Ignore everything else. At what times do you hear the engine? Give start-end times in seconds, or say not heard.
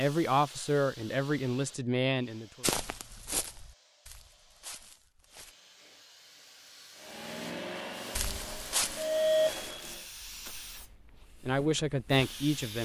7.0-10.1.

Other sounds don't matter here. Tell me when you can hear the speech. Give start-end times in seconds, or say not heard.
0.0-2.6, 11.4-12.7.